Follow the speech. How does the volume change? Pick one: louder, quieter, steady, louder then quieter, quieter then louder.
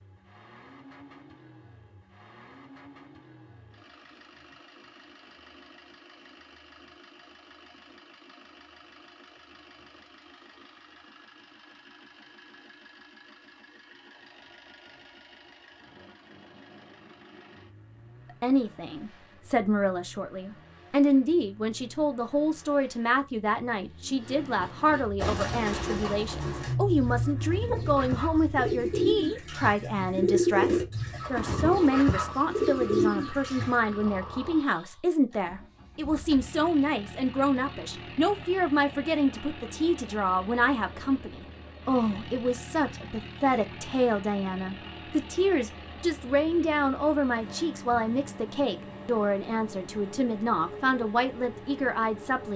steady.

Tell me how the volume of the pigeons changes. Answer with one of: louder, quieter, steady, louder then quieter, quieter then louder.
louder.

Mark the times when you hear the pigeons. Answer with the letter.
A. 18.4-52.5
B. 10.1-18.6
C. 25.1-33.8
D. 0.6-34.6
C.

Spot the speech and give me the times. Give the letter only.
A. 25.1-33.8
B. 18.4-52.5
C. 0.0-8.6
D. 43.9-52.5
B.